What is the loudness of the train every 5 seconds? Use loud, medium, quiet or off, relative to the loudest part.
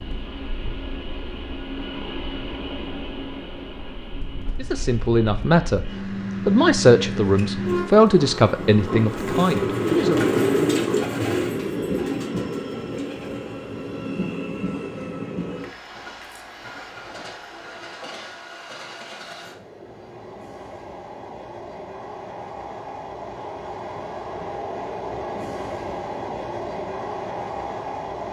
medium, loud, loud, medium, medium, loud.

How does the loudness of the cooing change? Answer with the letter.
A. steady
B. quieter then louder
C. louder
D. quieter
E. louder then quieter
E.